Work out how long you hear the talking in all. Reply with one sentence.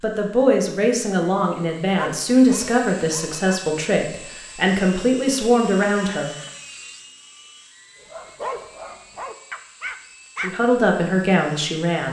You can hear the talking for 8 seconds altogether.